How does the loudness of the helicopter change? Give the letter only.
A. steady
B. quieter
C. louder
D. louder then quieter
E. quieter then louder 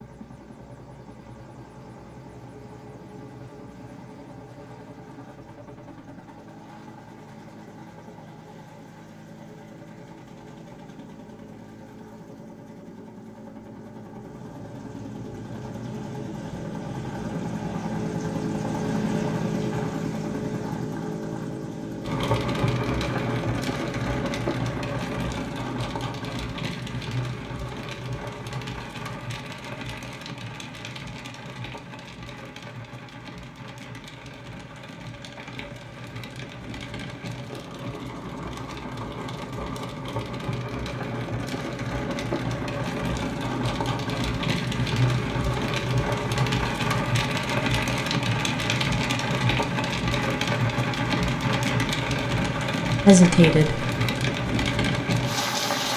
C.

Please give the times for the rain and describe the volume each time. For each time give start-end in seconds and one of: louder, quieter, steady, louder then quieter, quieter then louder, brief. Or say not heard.
22.0-55.9 quieter then louder.